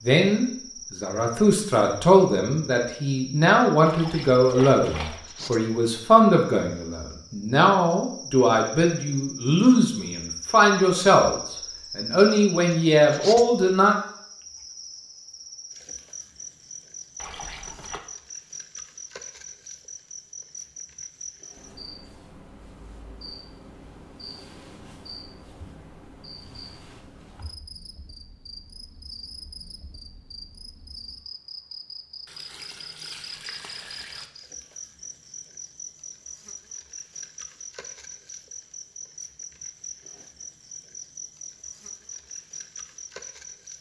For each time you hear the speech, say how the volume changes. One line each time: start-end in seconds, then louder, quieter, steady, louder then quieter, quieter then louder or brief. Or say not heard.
0.0-13.9 steady.